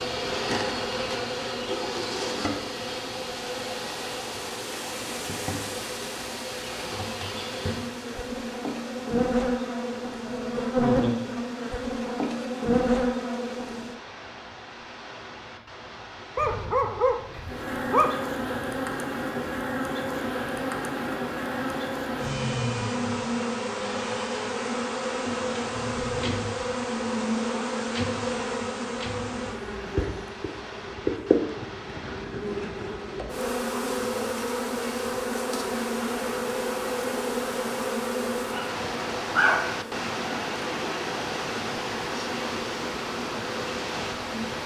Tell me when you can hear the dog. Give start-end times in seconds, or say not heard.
16.4-18.1, 38.5-39.8.